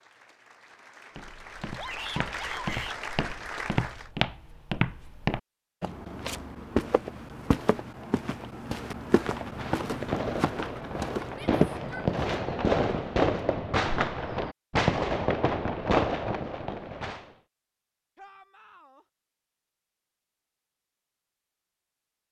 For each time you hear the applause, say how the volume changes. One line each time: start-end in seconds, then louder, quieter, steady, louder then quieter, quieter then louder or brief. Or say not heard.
0.0-4.1 louder.